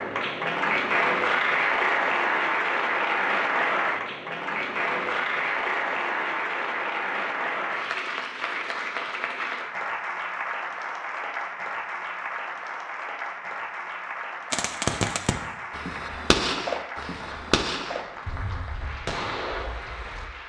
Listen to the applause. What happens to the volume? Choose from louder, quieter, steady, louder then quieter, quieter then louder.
quieter.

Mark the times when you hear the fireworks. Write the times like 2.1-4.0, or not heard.
14.5-20.3.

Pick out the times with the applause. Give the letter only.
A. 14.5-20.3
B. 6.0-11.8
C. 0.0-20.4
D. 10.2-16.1
C.